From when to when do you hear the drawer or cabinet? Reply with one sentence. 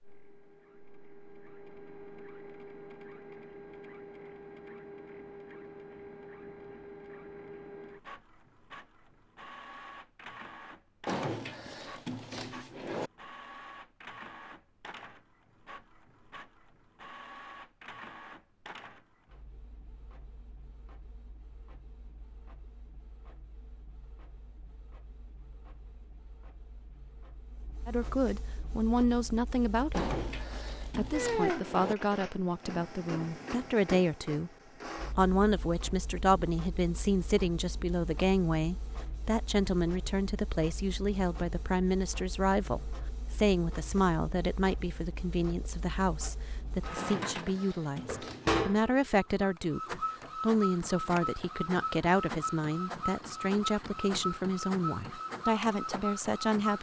The drawer or cabinet can be heard from 11.1 to 13.1 s, from 29.9 to 31.9 s and from 47.0 to 48.5 s.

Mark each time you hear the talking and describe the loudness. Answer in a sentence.
You can hear the talking briefly from 27.9 to 30.2 s; and from 30.9 to 56.7 s, at a steady volume.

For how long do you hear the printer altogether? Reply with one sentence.
The printer can be heard for 57 seconds in total.